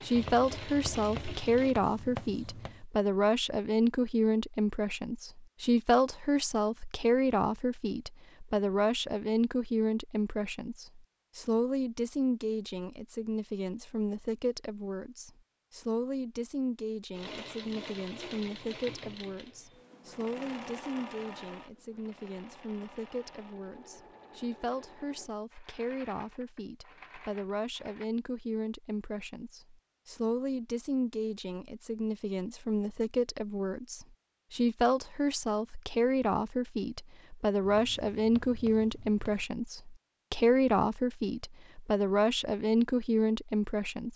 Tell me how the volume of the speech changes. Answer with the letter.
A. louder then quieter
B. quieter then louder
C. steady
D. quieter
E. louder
B.